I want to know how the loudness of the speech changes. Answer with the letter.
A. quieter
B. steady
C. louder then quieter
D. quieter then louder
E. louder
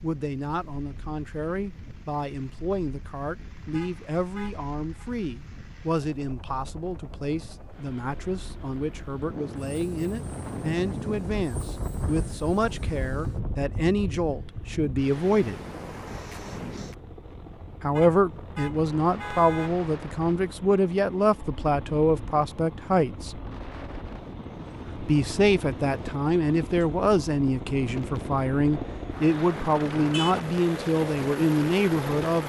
E.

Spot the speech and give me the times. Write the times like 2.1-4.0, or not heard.
0.0-15.6, 17.8-23.4, 25.0-32.4.